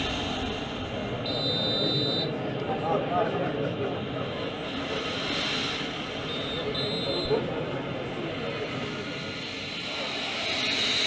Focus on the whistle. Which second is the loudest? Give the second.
2 s.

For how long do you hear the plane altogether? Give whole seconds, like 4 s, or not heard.
11 s.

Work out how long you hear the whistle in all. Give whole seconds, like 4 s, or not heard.
3 s.